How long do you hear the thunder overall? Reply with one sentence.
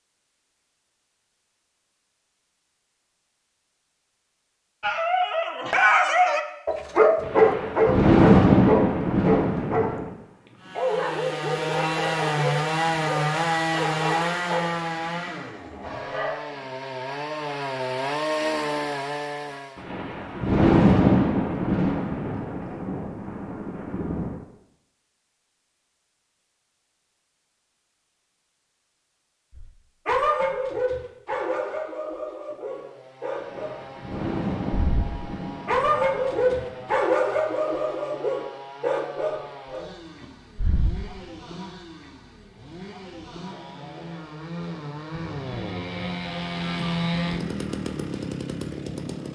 The thunder can be heard for 11 seconds in total.